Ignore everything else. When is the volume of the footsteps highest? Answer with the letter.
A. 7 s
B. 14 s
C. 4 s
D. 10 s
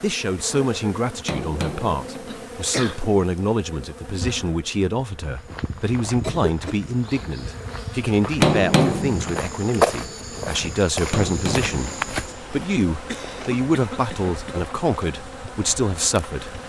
D.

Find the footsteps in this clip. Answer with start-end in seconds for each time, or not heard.
5.2-12.4.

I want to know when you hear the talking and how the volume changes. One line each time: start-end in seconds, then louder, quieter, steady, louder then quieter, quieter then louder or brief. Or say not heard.
0.0-16.6 steady.